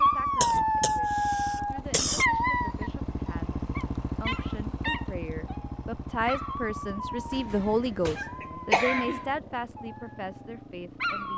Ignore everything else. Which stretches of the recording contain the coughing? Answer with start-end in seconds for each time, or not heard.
0.4-2.2, 7.3-9.3.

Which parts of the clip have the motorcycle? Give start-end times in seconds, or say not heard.
0.0-11.3.